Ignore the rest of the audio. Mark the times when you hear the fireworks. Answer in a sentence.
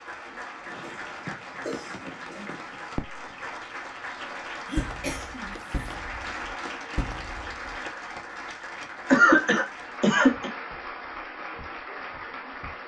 The fireworks can be heard from 0.7 to 3.5 s and from 4.8 to 7.8 s.